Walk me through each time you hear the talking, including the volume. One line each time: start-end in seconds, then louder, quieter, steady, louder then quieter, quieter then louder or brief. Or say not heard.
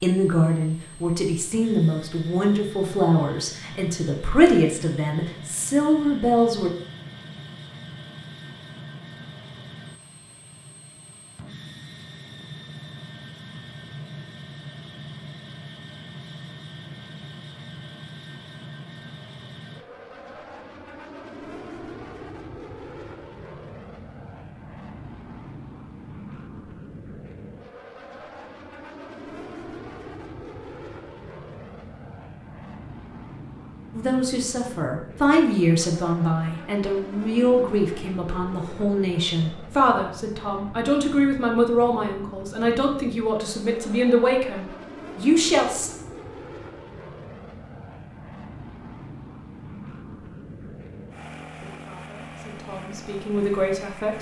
0.0-6.7 steady
33.9-45.9 steady
51.6-54.1 brief.